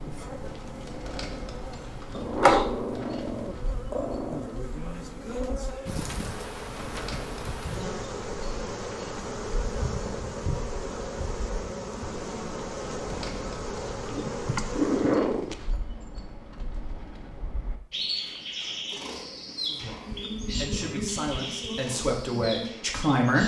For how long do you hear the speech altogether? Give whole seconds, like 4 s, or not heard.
4 s.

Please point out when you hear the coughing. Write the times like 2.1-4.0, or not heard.
not heard.